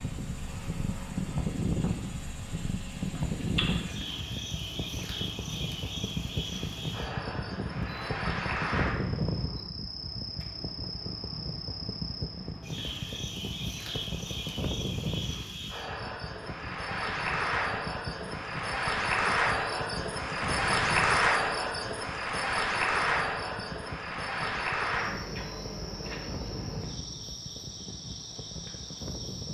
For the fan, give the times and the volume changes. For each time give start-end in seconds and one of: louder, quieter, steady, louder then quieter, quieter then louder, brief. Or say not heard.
0.0-29.5 quieter.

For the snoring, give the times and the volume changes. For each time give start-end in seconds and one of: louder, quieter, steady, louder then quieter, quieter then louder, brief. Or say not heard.
not heard.